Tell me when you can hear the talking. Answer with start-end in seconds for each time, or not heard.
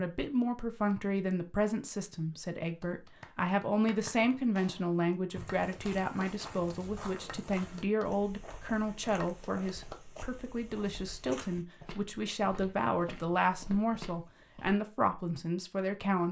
0.0-16.2.